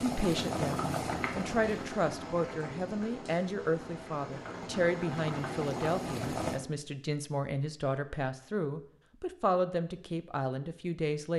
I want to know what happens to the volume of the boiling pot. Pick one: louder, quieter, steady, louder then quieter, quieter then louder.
quieter then louder.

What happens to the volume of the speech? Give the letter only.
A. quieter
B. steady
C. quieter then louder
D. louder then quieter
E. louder
B.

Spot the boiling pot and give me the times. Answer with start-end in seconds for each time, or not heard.
0.0-6.6.